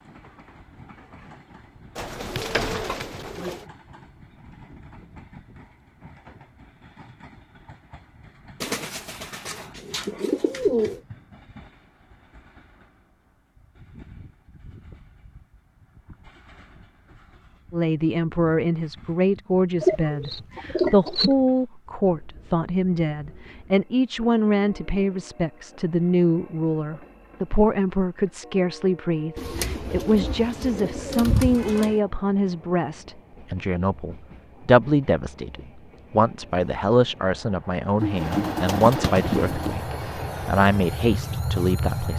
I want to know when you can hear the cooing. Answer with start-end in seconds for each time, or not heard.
1.9-3.6, 8.6-11.0, 19.8-21.4, 29.4-32.0, 38.0-39.8.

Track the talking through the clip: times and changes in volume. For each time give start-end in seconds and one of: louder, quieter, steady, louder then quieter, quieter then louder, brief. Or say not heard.
17.7-42.1 steady.